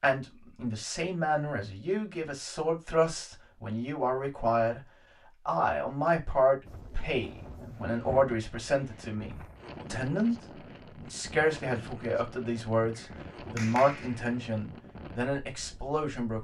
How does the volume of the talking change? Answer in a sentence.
The volume of the talking stays about the same.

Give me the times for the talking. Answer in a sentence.
You can hear the talking from 0.0 to 4.8 s, from 5.5 to 10.3 s and from 11.0 to 16.3 s.